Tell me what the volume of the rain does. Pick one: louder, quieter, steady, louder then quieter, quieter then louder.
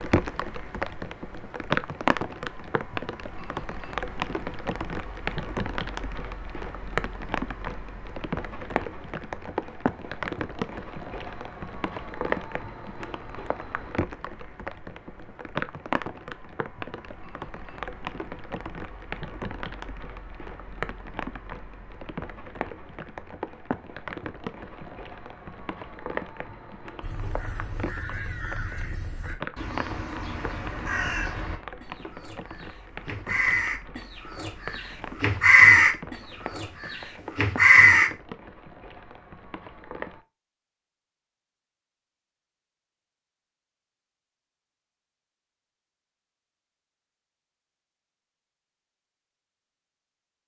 quieter.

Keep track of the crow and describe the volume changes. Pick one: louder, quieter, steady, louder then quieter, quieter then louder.
louder.